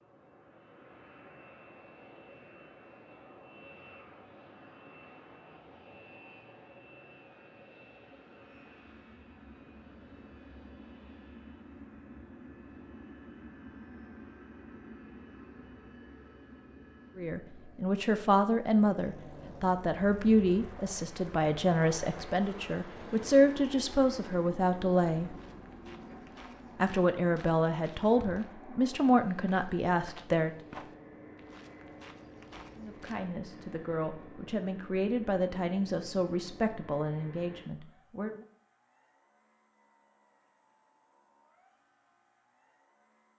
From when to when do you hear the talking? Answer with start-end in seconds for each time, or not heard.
17.1-25.4, 26.8-30.5, 32.8-38.5.